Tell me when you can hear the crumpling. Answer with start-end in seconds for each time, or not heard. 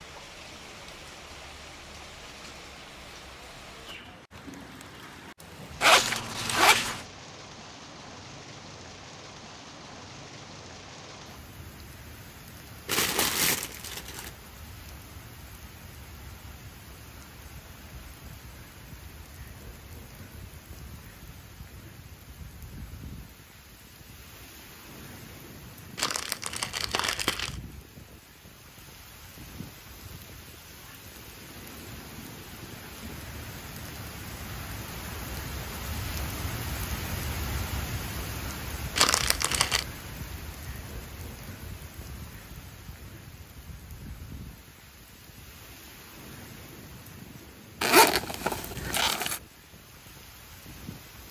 12.8-14.3, 25.9-27.6, 39.0-39.9.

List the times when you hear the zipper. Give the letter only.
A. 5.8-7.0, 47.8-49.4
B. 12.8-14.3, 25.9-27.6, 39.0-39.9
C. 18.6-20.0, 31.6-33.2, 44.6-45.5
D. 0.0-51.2
A.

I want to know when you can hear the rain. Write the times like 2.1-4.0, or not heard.
0.0-51.2.